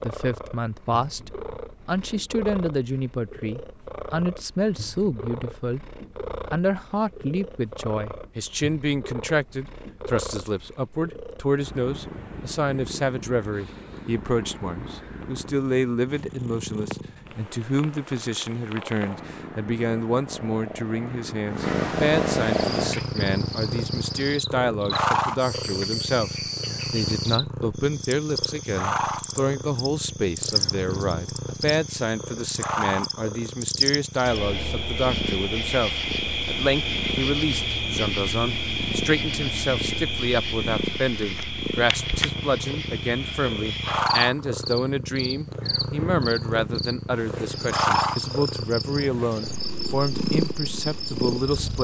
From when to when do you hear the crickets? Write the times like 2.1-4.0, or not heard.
22.8-51.7.